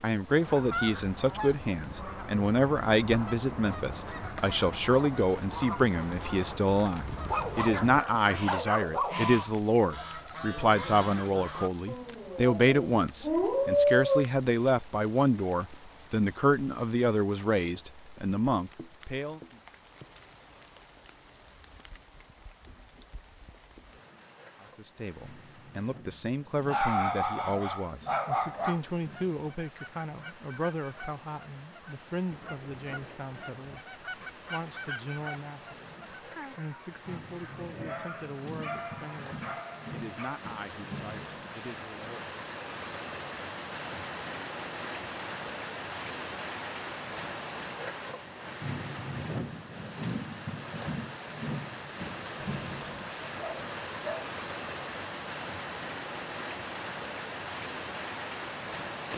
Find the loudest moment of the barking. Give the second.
14 s.